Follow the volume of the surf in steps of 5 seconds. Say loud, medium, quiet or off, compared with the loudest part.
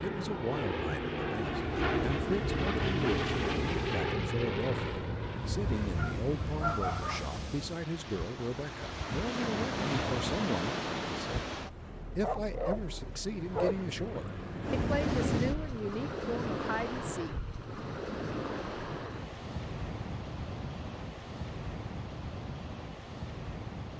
medium, loud, loud, loud, medium.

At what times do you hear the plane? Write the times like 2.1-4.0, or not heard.
0.0-6.8, 13.3-15.8.